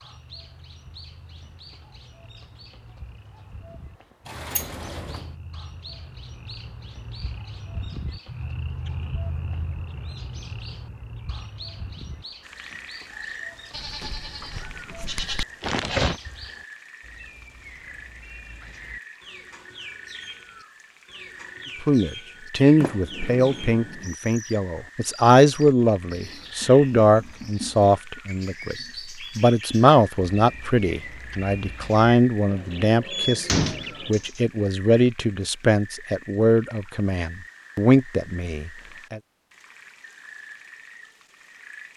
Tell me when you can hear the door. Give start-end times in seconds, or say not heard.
4.2-5.3, 22.8-24.1, 33.1-34.4.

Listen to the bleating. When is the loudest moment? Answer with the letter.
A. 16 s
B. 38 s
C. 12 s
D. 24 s
A.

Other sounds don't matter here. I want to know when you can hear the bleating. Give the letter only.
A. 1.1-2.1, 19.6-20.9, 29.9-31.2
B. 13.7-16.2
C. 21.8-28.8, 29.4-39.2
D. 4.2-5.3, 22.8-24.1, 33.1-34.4
B.